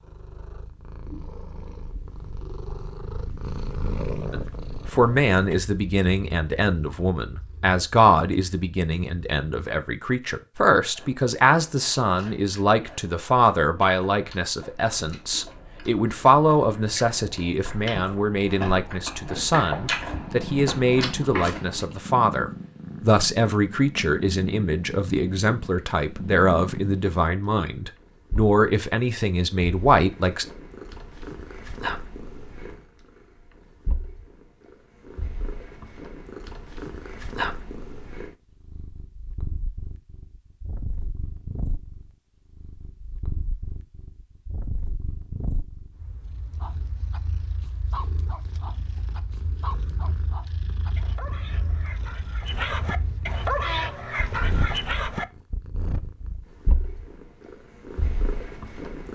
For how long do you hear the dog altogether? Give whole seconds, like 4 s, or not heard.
9 s.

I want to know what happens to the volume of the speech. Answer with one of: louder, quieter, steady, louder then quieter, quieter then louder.
steady.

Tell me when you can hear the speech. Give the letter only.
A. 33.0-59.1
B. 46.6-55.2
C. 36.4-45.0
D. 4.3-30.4
D.